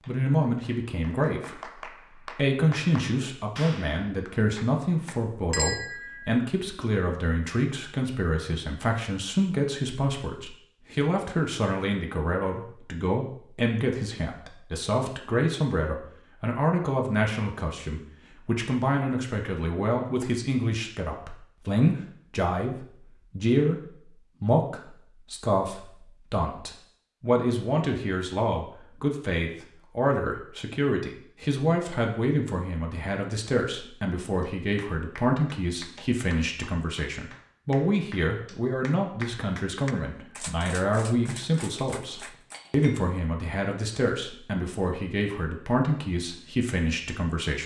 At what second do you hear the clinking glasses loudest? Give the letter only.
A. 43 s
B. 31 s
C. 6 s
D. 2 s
C.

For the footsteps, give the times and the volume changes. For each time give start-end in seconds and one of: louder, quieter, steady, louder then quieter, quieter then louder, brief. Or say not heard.
not heard.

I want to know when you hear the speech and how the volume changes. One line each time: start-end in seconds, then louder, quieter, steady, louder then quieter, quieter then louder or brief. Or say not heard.
0.1-23.8 steady
24.4-47.6 steady.